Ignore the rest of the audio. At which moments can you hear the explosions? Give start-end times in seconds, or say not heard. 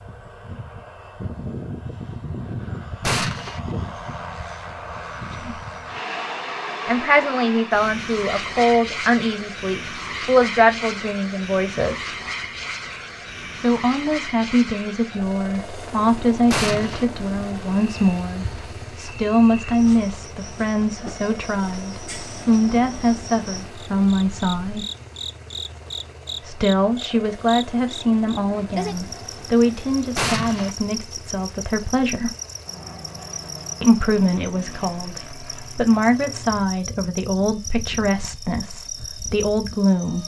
3.0-3.6, 16.5-17.1, 30.1-30.8.